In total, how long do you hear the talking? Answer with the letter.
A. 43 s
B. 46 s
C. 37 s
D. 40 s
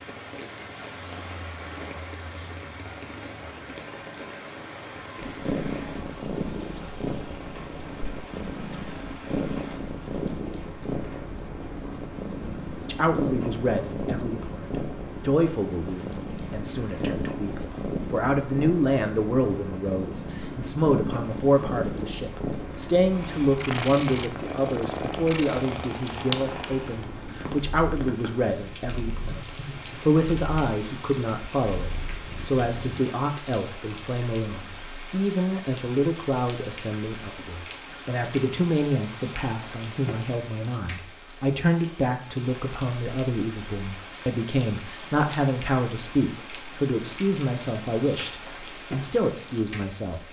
C.